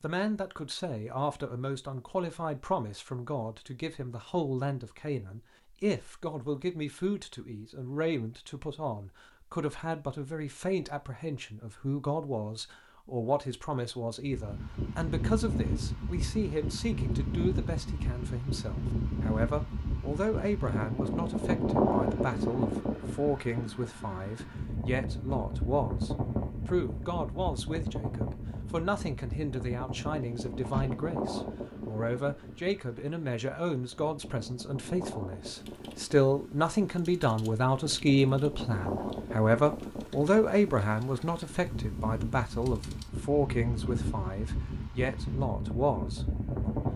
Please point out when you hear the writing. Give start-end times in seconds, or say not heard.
not heard.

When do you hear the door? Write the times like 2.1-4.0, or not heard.
30.5-30.9.